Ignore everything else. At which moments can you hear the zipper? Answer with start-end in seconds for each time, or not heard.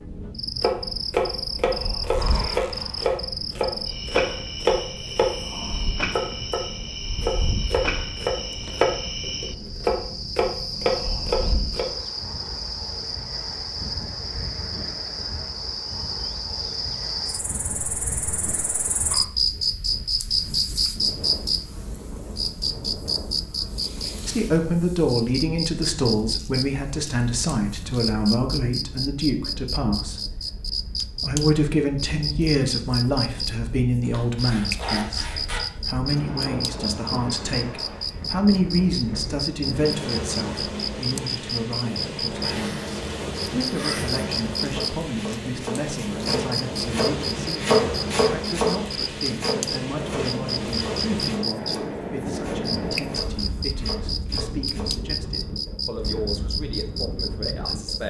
1.8-3.2, 34.0-35.6, 42.4-44.2.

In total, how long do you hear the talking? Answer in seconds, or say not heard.
33 s.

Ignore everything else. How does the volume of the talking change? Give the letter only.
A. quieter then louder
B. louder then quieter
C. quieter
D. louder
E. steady
C.